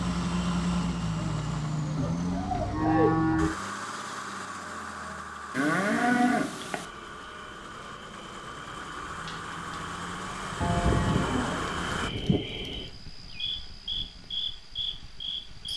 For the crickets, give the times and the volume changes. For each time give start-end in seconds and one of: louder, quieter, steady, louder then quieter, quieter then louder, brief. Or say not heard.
6.8-15.7 louder.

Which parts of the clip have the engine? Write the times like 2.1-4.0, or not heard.
0.0-12.1.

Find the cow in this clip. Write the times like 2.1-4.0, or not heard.
1.9-3.5, 5.5-6.8, 10.6-12.4.